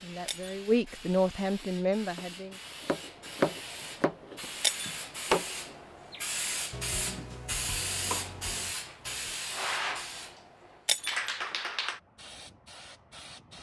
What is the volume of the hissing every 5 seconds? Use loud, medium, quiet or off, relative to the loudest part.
medium, loud, loud.